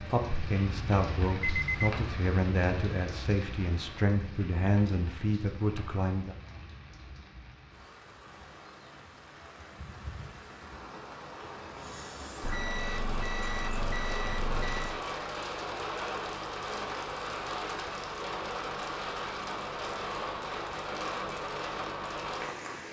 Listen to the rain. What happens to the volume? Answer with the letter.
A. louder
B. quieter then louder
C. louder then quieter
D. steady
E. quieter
B.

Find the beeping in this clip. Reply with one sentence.
The beeping can be heard from 1.4 to 1.9 s and from 12.4 to 15.1 s.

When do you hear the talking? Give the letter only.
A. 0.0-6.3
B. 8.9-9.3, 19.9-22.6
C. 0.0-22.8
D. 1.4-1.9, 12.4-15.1
A.